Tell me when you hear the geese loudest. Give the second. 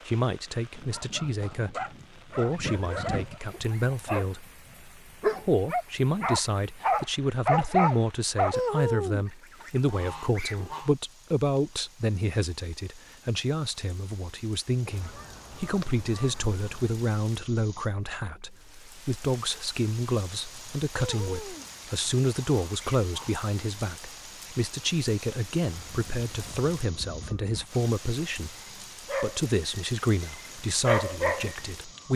9 s.